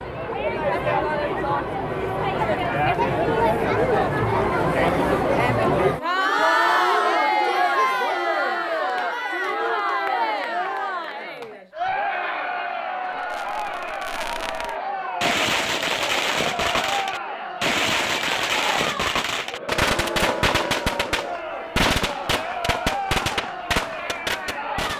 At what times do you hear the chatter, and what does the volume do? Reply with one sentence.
You can hear the chatter from 0.0 to 24.9 s, getting quieter.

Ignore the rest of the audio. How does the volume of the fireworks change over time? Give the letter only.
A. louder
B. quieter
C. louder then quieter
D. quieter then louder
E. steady
E.